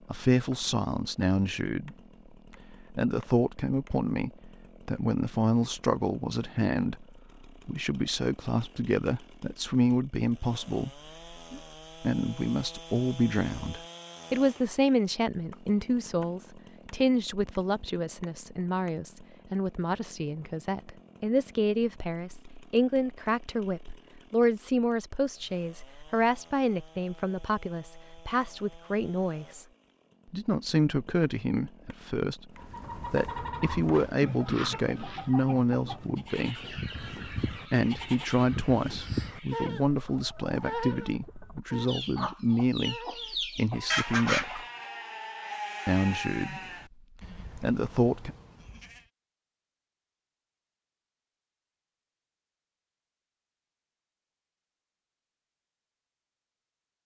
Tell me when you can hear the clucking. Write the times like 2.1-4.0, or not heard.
32.5-44.6.